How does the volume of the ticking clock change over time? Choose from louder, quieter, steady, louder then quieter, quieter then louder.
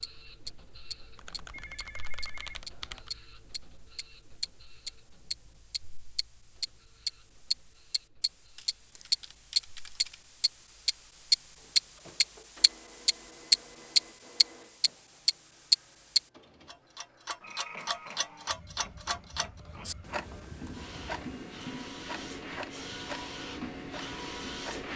louder then quieter.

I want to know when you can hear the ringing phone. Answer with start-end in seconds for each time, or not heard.
1.5-3.0.